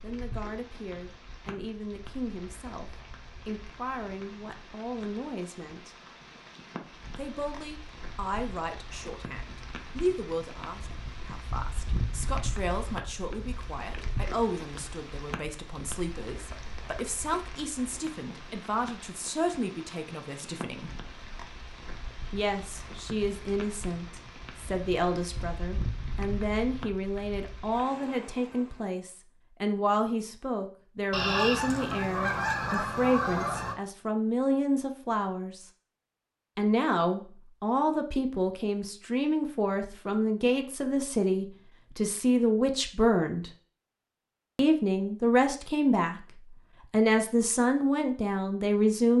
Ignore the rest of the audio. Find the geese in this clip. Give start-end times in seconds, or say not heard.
31.1-33.8.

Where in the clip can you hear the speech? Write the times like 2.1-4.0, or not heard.
0.0-6.0, 7.2-20.9, 22.3-35.6, 36.5-43.5, 44.5-46.2, 46.9-49.1.